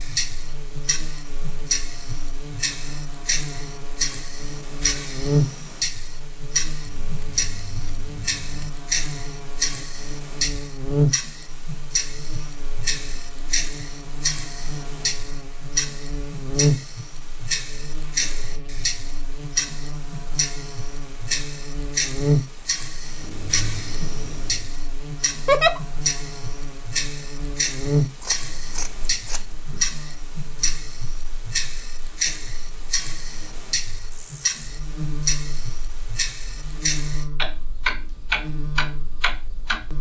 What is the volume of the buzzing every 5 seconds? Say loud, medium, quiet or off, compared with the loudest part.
medium, loud, loud, loud, loud, loud, quiet, medium.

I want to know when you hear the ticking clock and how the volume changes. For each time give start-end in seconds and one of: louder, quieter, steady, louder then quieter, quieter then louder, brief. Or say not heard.
0.0-39.9 steady.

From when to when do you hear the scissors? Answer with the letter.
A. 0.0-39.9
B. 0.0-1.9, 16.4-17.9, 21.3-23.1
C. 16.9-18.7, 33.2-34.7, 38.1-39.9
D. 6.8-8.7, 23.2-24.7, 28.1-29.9
D.